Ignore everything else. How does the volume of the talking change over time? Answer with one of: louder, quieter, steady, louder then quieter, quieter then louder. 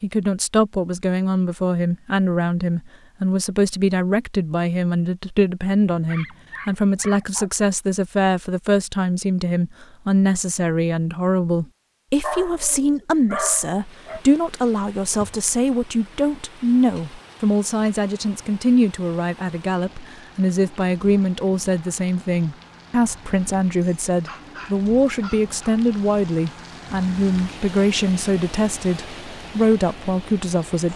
steady.